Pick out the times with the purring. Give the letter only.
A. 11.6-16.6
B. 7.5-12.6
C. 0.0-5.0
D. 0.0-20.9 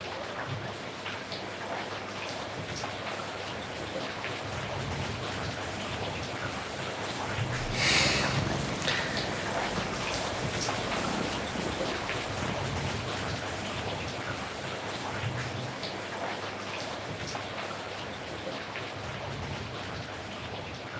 B.